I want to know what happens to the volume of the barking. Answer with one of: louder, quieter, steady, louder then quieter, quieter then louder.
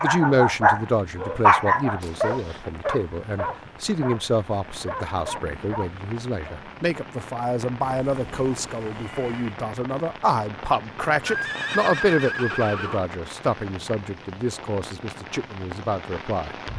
quieter.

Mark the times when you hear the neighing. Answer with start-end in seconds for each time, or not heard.
2.0-2.6, 7.8-9.6, 11.2-13.1.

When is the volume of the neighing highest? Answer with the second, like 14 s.
12 s.